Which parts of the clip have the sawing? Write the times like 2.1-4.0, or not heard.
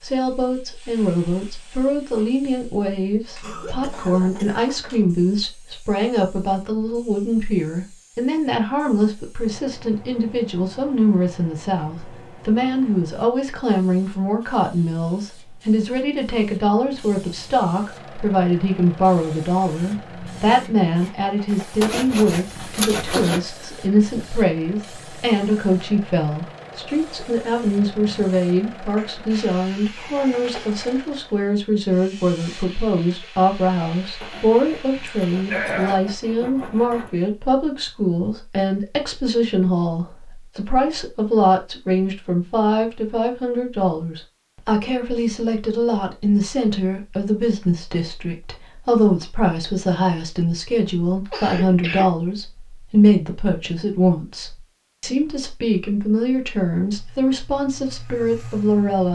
21.8-23.4, 34.2-37.1.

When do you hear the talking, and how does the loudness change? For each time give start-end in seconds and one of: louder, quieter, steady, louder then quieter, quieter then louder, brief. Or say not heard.
0.0-59.1 steady.